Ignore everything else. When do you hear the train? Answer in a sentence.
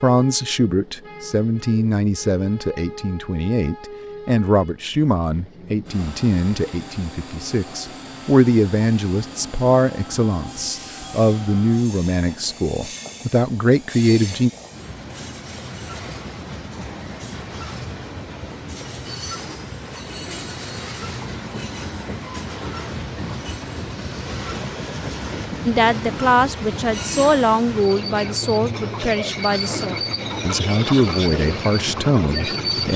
The train can be heard from 0.0 to 32.9 s.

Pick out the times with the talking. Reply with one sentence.
You can hear the talking from 0.0 to 14.5 s and from 25.6 to 32.9 s.